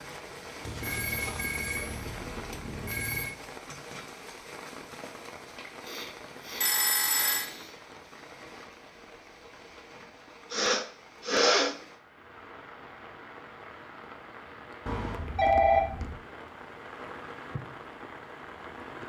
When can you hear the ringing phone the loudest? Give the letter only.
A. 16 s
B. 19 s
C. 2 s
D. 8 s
A.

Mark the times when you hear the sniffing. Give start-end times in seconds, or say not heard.
5.8-7.8, 10.5-11.8.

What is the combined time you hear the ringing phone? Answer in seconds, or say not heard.
5 s.